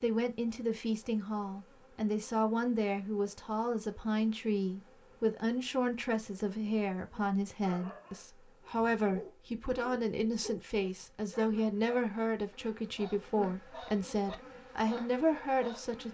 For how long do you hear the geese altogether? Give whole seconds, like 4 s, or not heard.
not heard.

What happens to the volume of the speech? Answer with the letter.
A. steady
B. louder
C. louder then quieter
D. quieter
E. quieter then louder
A.